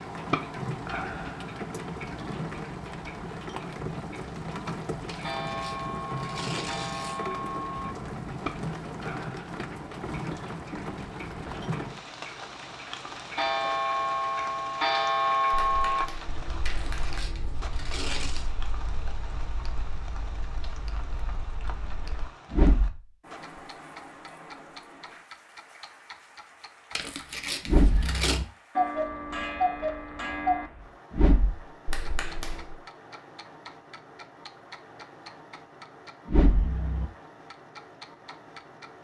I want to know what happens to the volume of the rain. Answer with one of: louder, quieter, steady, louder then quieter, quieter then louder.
quieter.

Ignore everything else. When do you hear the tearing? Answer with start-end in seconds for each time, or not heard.
5.0-7.2, 16.6-18.5, 26.9-28.4.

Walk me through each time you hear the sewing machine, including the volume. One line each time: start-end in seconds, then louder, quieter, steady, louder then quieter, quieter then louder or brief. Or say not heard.
not heard.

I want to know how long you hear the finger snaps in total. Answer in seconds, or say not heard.
3 s.